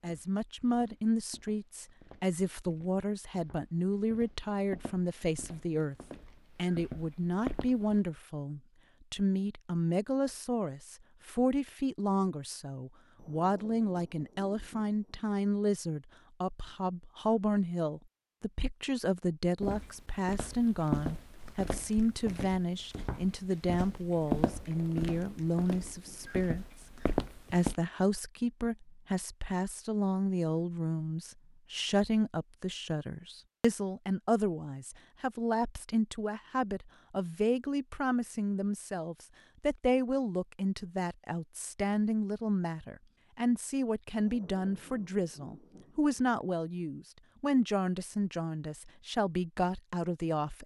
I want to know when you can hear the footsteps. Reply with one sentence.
The footsteps can be heard from 0.0 to 8.0 s and from 19.6 to 27.8 s.